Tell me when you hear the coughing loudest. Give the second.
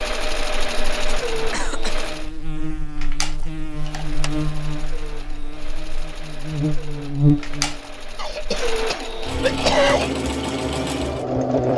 10 s.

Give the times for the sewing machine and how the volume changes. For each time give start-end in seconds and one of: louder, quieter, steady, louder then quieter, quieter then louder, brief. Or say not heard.
0.0-2.3 brief
3.7-11.7 louder.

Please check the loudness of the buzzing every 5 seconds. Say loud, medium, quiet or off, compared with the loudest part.
medium, loud, loud.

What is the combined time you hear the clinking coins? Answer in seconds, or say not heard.
2 s.